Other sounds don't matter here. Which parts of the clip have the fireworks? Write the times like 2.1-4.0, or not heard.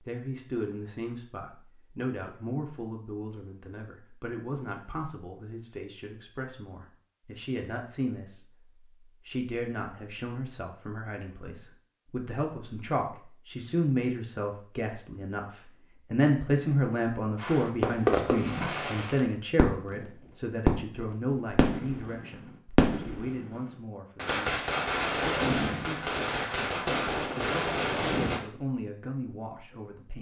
17.4-20.1, 20.6-28.4.